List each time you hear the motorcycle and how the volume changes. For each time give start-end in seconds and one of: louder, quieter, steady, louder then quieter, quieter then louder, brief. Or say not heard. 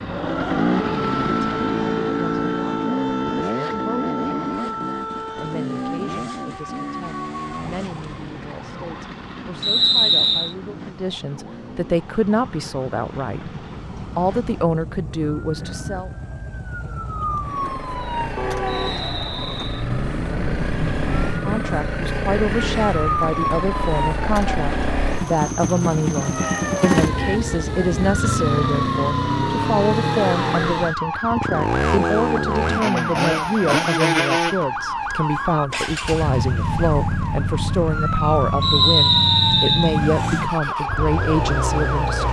0.0-42.2 quieter then louder.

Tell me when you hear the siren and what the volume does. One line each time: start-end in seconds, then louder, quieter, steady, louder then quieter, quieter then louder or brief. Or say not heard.
0.0-42.2 quieter then louder.